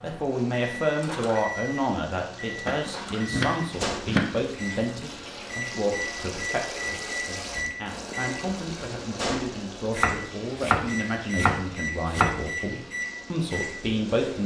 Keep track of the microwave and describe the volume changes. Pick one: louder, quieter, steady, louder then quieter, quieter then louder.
steady.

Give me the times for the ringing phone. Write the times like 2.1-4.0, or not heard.
not heard.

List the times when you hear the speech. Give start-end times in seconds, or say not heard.
0.0-14.4.